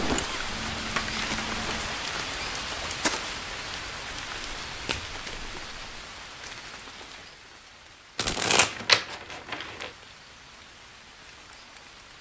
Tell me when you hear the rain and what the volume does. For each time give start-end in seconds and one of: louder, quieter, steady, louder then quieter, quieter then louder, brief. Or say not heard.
0.0-12.1 quieter.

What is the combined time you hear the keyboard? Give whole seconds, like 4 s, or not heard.
not heard.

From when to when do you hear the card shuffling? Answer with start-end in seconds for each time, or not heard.
0.5-2.0, 4.1-6.0, 8.2-9.9.